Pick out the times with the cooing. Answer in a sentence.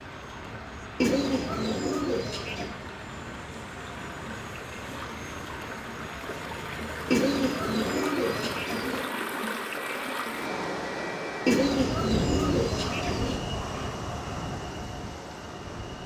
You can hear the cooing from 1.0 to 2.7 s, from 7.1 to 9.1 s and from 11.4 to 13.4 s.